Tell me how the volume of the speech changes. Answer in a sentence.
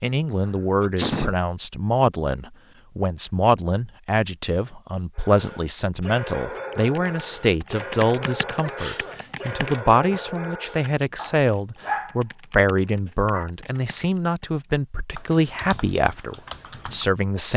The loudness of the speech stays about the same.